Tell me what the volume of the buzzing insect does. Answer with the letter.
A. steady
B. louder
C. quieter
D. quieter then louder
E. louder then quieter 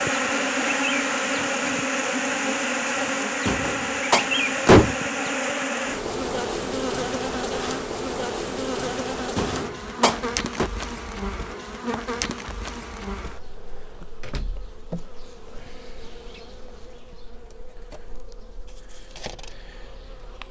C.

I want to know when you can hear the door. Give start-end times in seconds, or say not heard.
3.5-5.0, 9.3-10.7, 14.2-14.8.